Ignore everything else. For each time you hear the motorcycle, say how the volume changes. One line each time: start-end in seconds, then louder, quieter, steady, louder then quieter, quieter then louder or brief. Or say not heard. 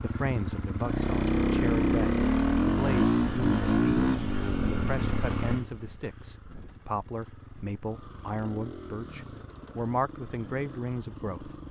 0.0-11.6 quieter.